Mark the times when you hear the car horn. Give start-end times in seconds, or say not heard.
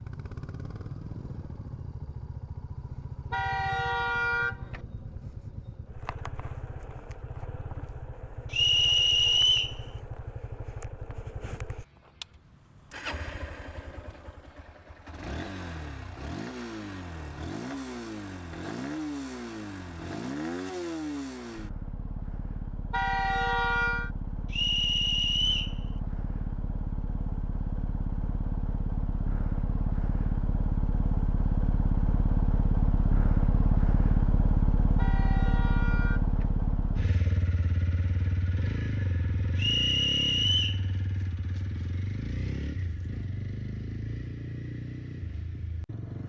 3.3-4.8, 22.9-24.1, 35.0-36.5.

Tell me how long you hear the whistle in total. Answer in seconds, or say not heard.
4 s.